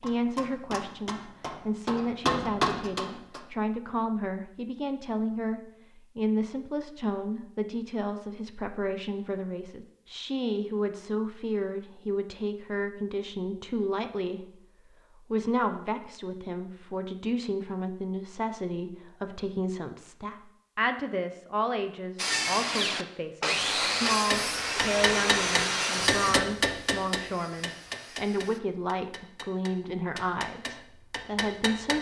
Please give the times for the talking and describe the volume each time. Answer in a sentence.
The talking can be heard from 0.0 to 31.9 s, at a steady volume.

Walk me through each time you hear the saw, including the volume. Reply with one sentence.
The saw can be heard from 22.1 to 28.6 s, getting quieter.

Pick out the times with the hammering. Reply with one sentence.
You can hear the hammering from 0.0 to 3.5 s and from 24.1 to 31.9 s.